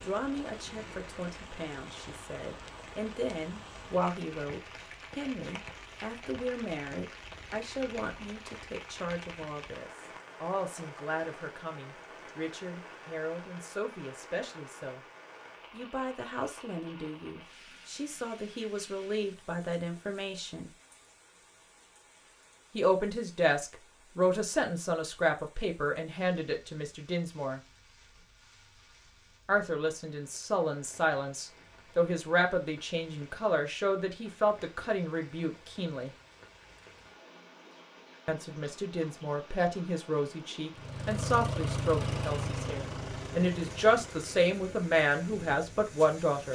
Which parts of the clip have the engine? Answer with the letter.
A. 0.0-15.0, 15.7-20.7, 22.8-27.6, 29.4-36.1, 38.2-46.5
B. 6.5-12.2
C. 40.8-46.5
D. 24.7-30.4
C.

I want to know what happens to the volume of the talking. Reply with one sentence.
The volume of the talking goes up.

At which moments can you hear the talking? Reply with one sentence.
The talking can be heard from 0.0 to 15.0 s, from 15.7 to 20.7 s, from 22.8 to 27.6 s, from 29.4 to 36.1 s and from 38.2 to 46.5 s.